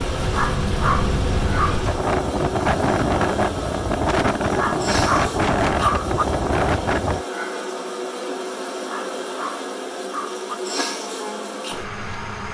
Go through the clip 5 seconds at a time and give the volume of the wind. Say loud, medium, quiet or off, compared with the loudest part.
loud, loud, off.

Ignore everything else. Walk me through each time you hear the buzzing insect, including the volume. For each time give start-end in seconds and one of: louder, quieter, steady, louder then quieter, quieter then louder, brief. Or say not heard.
0.0-12.4 steady.